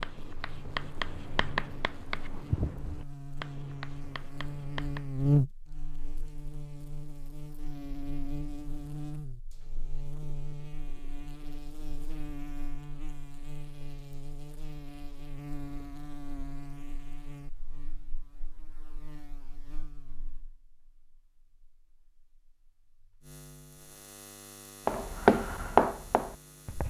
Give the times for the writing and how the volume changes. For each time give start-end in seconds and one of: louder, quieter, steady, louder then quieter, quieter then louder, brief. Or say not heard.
0.0-5.0 quieter
24.9-26.8 brief.